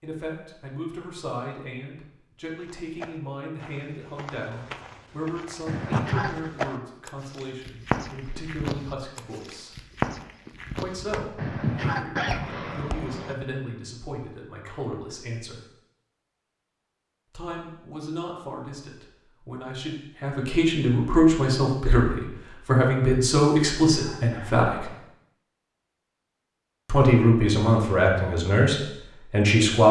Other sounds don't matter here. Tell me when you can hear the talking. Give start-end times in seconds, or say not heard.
0.0-9.8, 10.8-15.6, 17.3-24.9, 26.9-29.8.